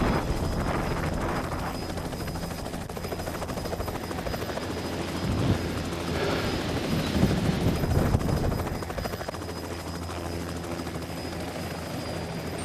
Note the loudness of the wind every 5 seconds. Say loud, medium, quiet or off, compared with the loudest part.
medium, loud, off.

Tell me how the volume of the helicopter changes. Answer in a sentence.
The loudness of the helicopter stays about the same.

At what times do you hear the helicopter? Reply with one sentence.
You can hear the helicopter from 0.0 to 12.6 s.